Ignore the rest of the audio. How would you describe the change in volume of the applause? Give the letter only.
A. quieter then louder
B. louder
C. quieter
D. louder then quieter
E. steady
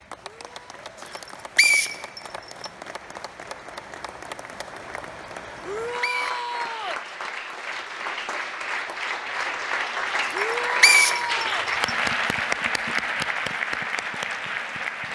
B.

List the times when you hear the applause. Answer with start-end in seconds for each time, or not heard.
0.0-15.1.